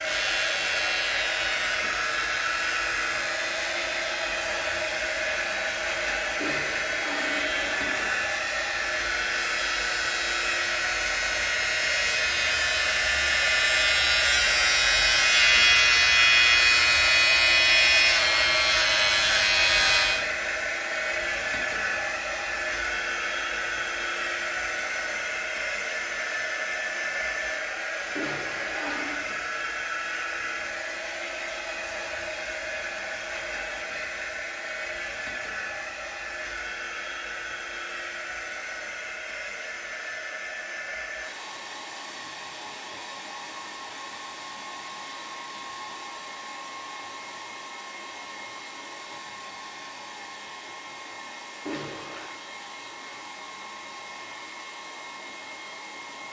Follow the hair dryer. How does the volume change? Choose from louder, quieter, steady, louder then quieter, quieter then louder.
quieter.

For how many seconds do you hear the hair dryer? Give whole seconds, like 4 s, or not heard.
56 s.